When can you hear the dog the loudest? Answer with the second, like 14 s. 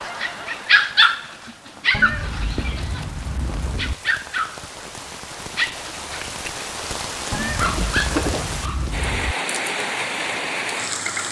1 s.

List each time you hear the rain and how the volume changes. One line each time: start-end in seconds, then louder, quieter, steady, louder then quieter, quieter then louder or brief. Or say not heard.
0.0-11.2 louder.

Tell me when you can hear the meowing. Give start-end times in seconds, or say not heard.
1.9-4.0, 7.3-9.3.